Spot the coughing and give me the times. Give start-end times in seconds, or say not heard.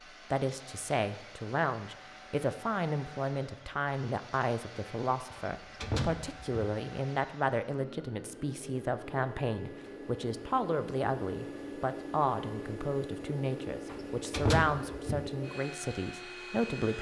not heard.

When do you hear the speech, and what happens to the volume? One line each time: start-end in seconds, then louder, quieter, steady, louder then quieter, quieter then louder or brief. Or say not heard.
0.3-16.9 steady.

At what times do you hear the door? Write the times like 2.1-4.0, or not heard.
5.3-6.6, 13.9-15.3.